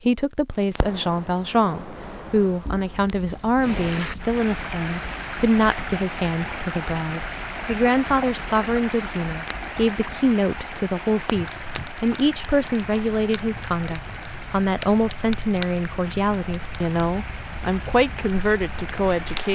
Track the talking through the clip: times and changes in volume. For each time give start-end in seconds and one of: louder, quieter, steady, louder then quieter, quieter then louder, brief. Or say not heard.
0.1-19.5 steady.